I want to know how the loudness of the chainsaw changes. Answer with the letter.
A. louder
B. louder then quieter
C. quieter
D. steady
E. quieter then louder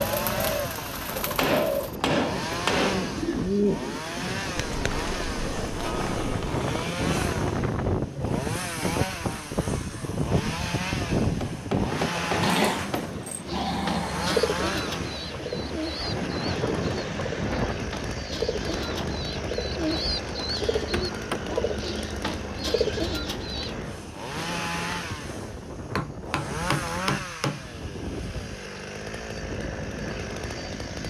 D.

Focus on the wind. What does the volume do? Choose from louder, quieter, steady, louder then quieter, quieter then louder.
louder then quieter.